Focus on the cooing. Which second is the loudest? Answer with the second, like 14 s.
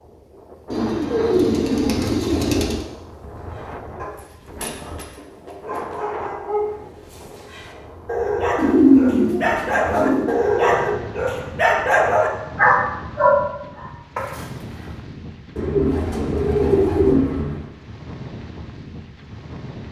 9 s.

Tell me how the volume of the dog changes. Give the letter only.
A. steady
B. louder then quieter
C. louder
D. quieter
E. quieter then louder
C.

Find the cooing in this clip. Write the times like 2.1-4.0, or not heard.
0.7-2.8, 8.6-10.3, 15.6-17.6.